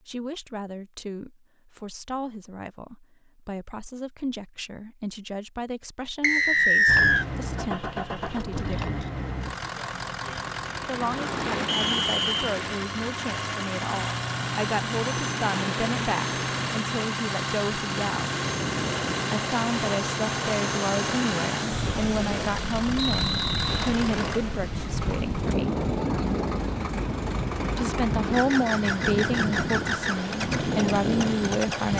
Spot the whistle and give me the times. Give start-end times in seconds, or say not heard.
6.2-7.2, 11.7-12.4, 22.9-23.9.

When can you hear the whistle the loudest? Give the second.
7 s.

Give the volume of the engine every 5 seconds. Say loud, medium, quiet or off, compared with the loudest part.
off, loud, loud, loud, loud, loud, loud.